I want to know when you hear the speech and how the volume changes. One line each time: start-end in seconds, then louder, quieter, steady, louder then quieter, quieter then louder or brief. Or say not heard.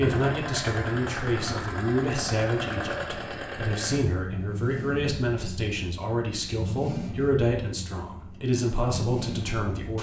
0.0-9.9 steady.